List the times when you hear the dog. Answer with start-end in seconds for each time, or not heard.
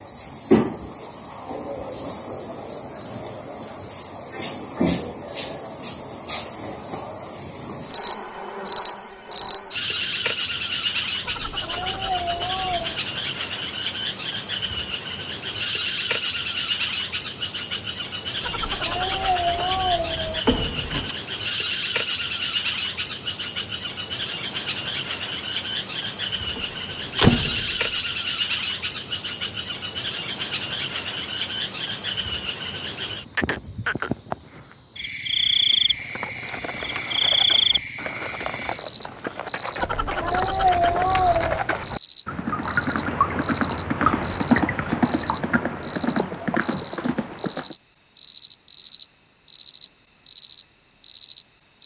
not heard.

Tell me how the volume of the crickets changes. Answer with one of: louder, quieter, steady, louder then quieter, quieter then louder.
steady.